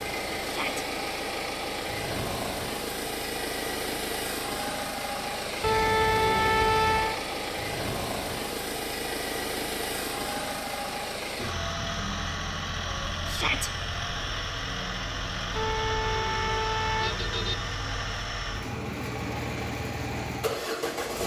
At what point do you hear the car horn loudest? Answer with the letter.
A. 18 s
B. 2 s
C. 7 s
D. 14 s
C.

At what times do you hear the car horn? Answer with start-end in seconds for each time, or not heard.
5.6-7.2, 15.6-17.6.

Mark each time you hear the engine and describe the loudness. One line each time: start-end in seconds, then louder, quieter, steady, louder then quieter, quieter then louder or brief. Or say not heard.
0.0-21.2 steady.